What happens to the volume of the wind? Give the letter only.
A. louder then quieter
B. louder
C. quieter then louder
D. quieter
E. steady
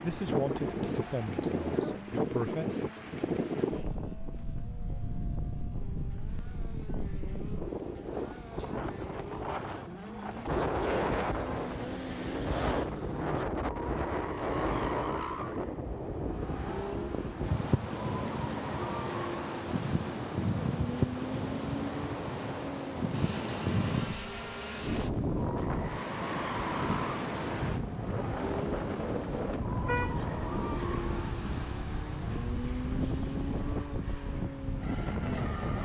E.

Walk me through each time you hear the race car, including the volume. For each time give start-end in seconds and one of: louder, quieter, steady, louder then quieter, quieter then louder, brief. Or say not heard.
0.0-35.8 louder.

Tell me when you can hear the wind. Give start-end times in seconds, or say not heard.
0.0-35.8.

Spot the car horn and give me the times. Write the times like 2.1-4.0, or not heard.
28.9-30.2.